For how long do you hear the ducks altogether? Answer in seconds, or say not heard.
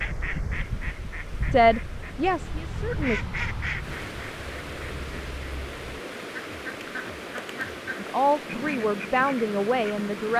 10 s.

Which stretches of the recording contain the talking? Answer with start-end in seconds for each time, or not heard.
1.5-3.2, 8.0-10.3.